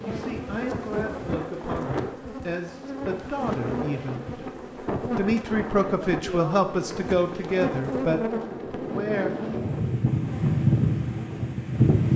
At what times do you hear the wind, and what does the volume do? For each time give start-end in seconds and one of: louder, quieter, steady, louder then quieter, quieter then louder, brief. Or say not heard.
0.0-12.1 louder.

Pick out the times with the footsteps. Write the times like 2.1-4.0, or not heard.
not heard.